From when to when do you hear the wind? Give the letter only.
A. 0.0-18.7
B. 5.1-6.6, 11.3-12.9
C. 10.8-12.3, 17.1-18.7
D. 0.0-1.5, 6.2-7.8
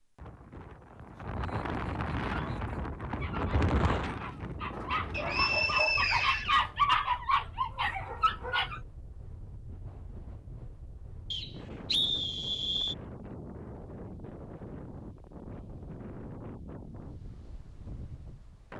A.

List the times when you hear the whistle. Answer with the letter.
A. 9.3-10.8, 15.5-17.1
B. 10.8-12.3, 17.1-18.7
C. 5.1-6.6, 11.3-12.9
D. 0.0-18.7
C.